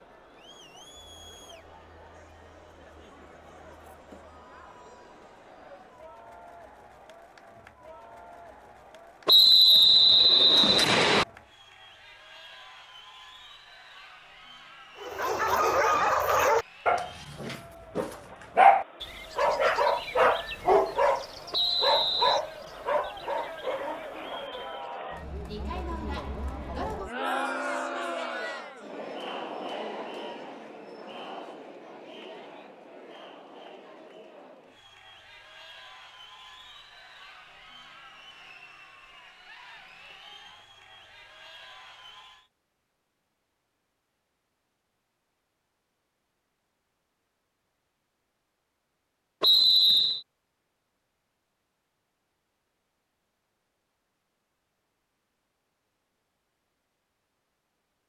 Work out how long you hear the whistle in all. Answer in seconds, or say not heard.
4 s.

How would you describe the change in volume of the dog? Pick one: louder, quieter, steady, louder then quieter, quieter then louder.
quieter.